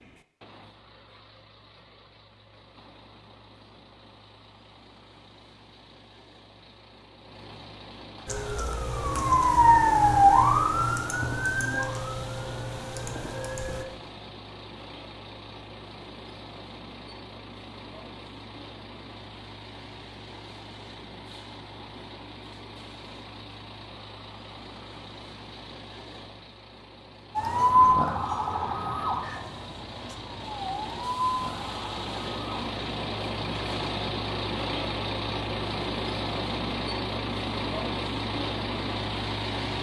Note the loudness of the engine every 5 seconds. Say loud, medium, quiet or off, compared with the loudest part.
quiet, quiet, quiet, quiet, quiet, quiet, loud, loud.